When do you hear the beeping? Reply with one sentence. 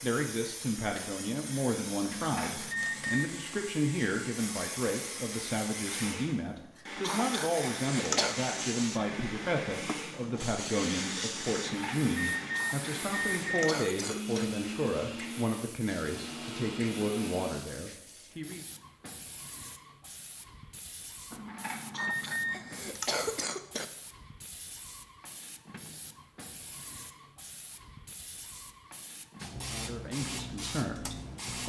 You can hear the beeping from 2.0 to 3.3 s, from 11.4 to 13.8 s and from 21.3 to 22.9 s.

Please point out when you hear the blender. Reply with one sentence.
You can hear the blender from 2.8 to 17.7 s.